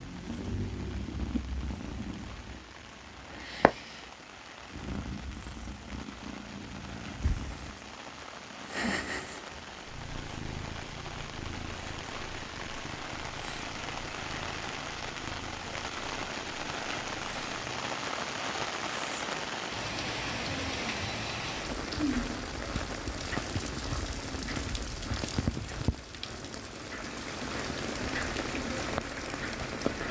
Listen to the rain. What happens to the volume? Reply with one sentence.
The loudness of the rain goes up.